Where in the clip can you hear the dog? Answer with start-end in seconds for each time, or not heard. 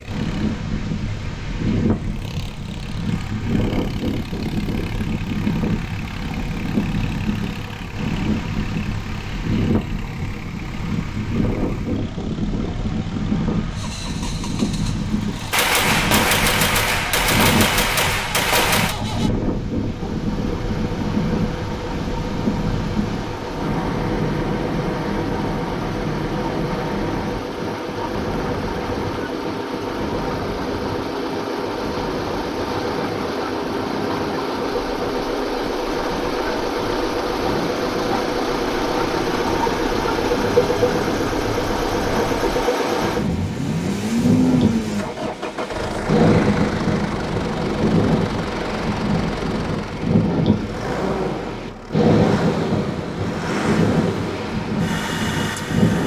not heard.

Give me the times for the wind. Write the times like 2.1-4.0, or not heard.
0.0-56.0.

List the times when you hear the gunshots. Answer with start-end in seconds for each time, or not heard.
15.5-18.9.